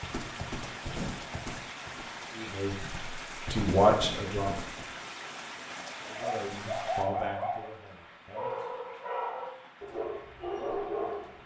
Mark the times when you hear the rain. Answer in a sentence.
You can hear the rain from 0.0 to 11.4 s.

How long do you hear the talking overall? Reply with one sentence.
The talking can be heard for 5 seconds in total.